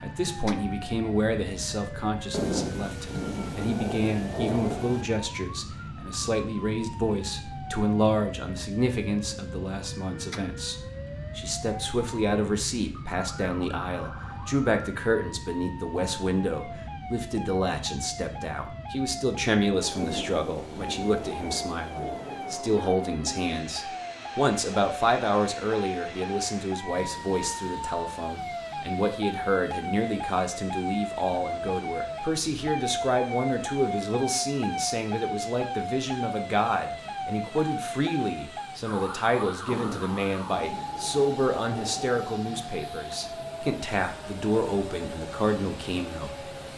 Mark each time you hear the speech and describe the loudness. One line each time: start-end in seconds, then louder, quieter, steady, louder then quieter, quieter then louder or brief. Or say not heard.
0.0-46.3 steady.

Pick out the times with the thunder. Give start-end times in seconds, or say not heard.
2.3-5.0, 19.9-22.6, 39.6-42.2.